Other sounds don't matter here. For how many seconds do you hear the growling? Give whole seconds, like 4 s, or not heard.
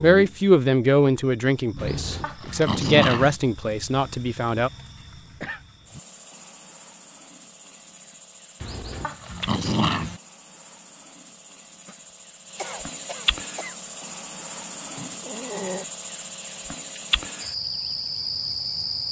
4 s.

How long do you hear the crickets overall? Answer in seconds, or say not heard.
19 s.